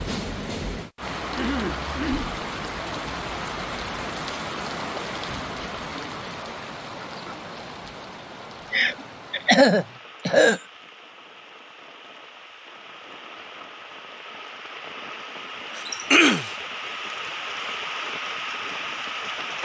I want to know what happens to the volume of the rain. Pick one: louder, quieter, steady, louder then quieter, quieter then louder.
quieter then louder.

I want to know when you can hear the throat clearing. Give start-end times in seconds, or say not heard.
1.3-2.3, 8.7-10.6, 15.8-16.5.